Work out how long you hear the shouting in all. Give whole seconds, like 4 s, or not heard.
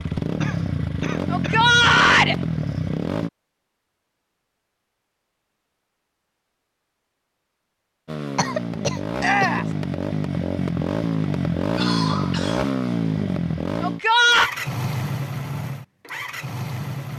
2 s.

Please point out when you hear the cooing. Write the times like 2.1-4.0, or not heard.
not heard.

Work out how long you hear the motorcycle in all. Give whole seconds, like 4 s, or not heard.
12 s.